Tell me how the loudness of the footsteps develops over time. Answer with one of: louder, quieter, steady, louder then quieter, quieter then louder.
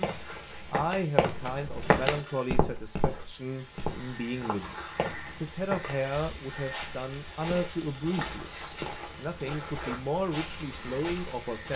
quieter.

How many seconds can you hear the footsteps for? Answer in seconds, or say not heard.
12 s.